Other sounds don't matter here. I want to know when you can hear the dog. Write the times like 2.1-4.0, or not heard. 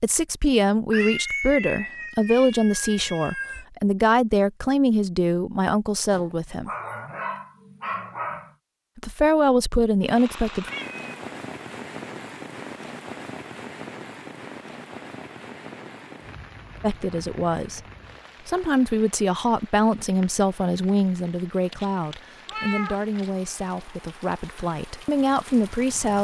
6.1-8.6.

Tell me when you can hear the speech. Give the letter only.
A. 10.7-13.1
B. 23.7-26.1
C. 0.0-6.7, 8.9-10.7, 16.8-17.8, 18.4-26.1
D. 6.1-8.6
C.